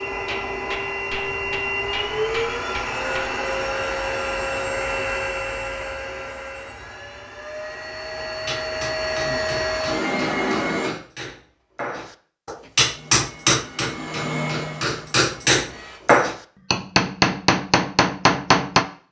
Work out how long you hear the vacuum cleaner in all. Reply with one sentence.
The vacuum cleaner can be heard for 14 seconds in total.